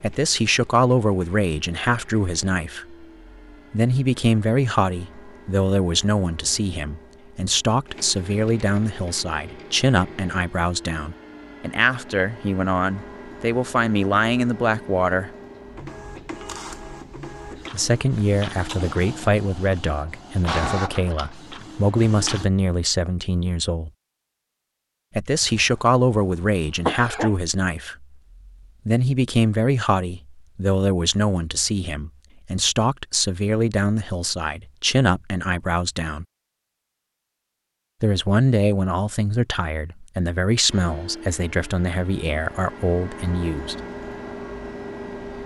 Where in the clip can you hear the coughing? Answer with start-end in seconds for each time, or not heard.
25.4-27.4.